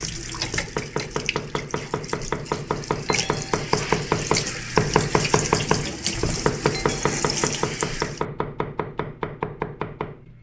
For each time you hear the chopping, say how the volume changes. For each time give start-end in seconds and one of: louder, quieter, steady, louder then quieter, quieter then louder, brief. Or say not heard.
0.0-10.3 louder then quieter.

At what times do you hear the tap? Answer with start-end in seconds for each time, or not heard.
0.0-8.2.